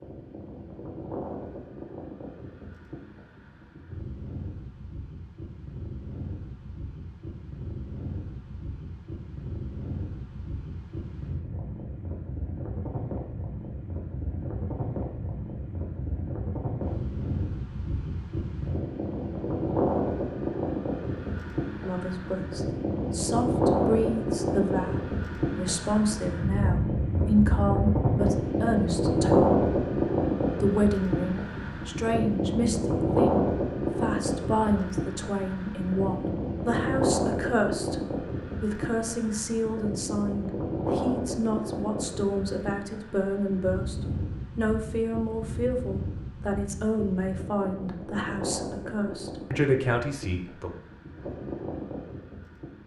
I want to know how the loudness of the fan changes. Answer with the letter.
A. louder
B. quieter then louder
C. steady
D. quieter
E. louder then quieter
E.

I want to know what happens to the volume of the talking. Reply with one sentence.
The loudness of the talking stays about the same.